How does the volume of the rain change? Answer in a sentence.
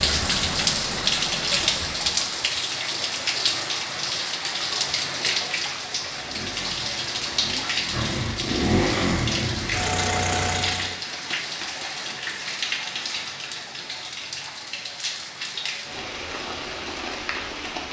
The volume of the rain goes down.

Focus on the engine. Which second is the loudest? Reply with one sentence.
The loudest moment of the engine is at 9 seconds.